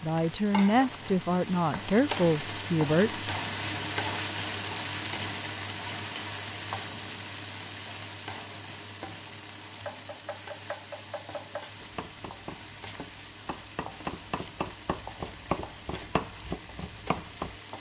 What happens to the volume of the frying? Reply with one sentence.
The loudness of the frying goes down.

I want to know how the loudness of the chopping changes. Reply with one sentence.
The volume of the chopping goes up.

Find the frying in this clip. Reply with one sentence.
You can hear the frying from 0.0 to 17.7 s.